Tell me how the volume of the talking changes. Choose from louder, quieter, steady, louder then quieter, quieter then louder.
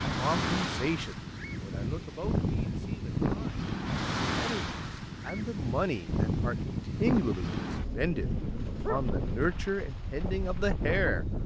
quieter then louder.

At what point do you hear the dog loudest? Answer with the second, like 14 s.
9 s.